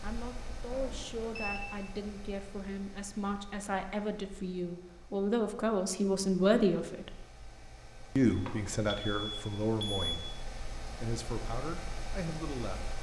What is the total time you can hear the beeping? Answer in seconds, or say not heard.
3 s.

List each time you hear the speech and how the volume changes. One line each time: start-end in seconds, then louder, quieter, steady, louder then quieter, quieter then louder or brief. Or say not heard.
0.0-7.2 louder
8.2-12.9 quieter then louder.